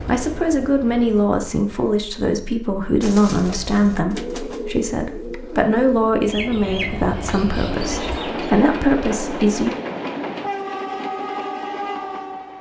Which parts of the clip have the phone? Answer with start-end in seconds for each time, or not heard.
not heard.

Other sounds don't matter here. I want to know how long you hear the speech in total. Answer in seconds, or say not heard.
10 s.